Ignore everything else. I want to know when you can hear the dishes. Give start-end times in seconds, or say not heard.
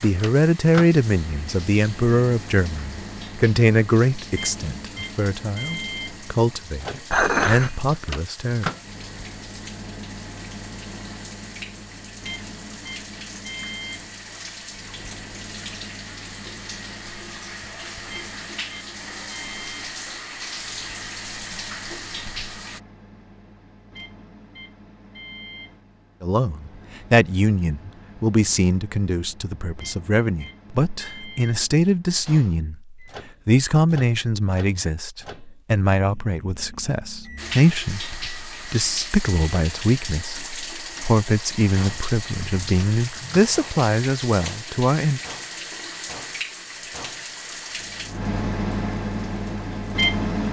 7.1-8.0.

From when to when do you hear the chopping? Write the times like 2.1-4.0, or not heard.
not heard.